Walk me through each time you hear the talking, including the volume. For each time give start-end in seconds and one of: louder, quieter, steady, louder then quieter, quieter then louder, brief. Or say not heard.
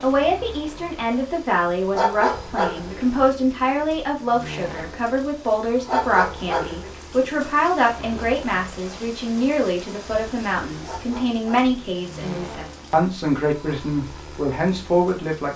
0.0-15.5 steady.